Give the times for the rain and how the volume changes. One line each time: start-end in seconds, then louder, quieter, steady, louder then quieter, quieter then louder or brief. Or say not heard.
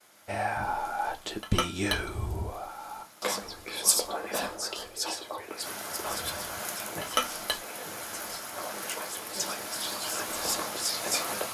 0.0-11.4 louder.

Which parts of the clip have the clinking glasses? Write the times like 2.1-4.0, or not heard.
1.4-2.1, 7.0-7.6.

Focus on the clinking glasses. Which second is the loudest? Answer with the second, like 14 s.
7 s.